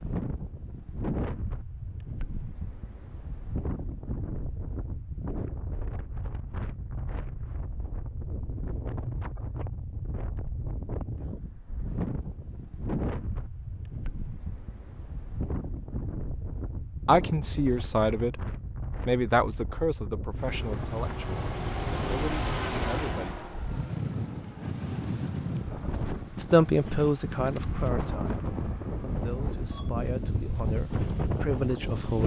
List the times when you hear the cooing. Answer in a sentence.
You can't hear the cooing here.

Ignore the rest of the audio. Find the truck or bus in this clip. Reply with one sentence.
The truck or bus can be heard from 20.4 to 29.9 s.